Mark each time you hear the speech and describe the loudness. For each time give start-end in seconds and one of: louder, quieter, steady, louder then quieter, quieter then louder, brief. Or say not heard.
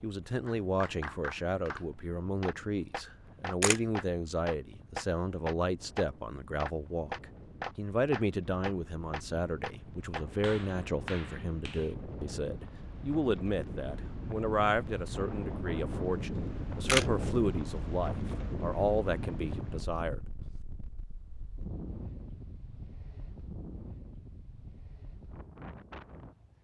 0.0-20.2 steady.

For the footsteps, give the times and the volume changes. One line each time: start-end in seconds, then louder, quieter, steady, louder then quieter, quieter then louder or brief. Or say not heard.
not heard.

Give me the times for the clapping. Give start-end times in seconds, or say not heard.
0.5-11.9.